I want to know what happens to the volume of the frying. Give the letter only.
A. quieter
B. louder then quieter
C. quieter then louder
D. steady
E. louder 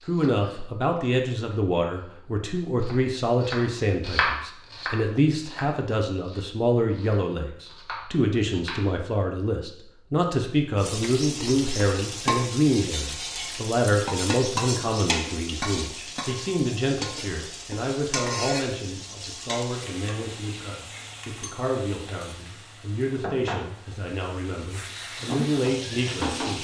C.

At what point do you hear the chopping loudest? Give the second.
4 s.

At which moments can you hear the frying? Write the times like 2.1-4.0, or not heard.
10.8-26.6.